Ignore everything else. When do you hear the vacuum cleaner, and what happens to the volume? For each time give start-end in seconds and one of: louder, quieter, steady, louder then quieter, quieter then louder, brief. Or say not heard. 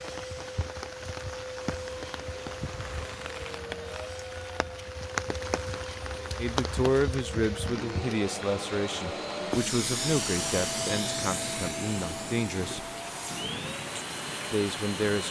0.0-15.2 louder then quieter.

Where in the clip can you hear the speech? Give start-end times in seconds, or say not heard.
6.3-12.8, 14.5-15.2.